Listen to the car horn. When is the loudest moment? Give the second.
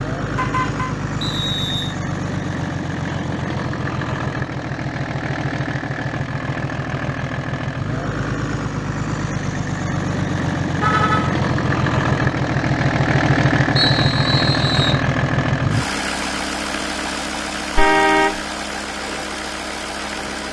18 s.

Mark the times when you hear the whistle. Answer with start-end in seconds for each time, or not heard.
1.2-1.9, 13.8-15.1.